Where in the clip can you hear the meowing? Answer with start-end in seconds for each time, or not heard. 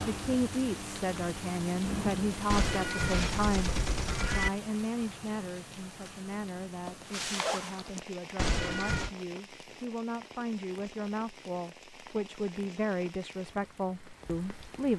2.5-4.5, 8.3-9.1.